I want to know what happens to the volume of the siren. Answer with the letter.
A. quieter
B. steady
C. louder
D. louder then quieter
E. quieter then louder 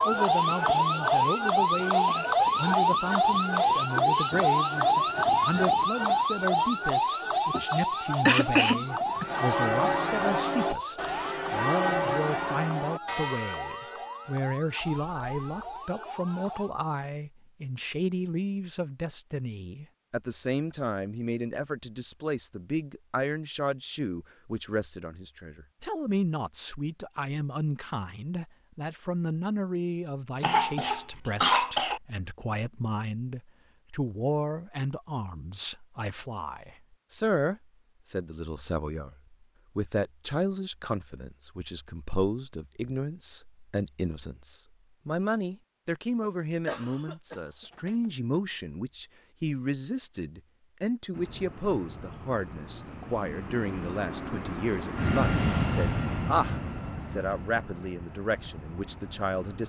A.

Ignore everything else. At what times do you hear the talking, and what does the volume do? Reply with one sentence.
You can hear the talking from 0.1 to 59.6 s, at a steady volume.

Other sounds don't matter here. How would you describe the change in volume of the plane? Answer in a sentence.
The loudness of the plane goes up, then down.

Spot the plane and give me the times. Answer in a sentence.
The plane can be heard from 51.1 to 59.6 s.